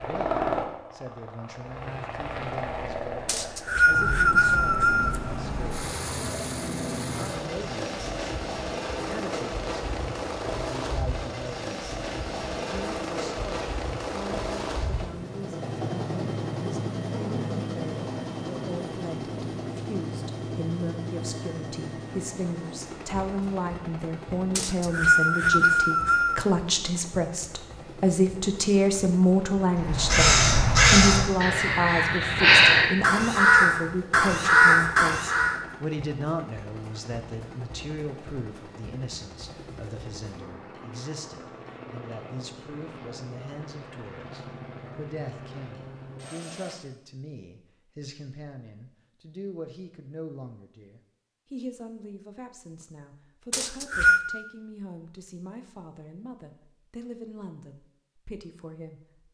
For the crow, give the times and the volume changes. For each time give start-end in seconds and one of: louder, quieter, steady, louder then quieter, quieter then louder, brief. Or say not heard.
29.8-35.6 quieter then louder.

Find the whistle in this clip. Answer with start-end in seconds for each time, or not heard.
3.2-5.2, 24.6-26.4, 53.5-54.2.